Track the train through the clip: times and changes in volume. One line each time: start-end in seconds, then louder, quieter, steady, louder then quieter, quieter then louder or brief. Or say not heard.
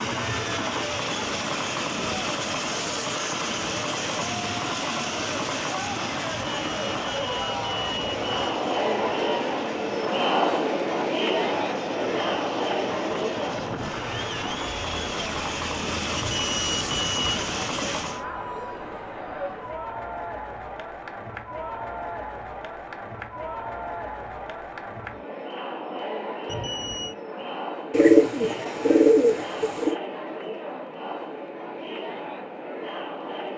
0.0-18.2 quieter then louder.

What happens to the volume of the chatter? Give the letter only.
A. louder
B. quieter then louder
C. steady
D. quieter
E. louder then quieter
E.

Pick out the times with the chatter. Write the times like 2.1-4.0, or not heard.
0.2-33.5.